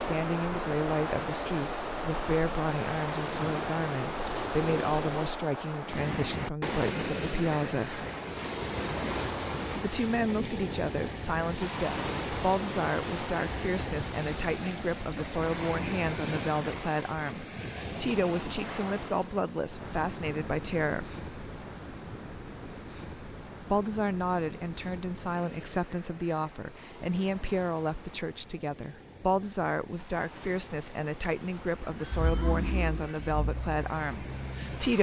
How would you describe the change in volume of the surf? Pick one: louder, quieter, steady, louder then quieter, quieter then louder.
quieter.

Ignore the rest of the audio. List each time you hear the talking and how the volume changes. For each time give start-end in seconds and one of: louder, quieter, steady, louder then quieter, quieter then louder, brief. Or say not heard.
0.1-8.1 steady
9.8-21.1 steady
23.6-34.9 steady.